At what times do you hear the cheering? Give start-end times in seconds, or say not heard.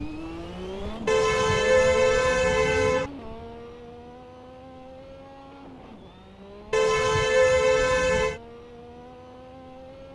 not heard.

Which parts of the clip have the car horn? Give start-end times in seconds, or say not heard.
1.1-3.1, 6.7-8.4.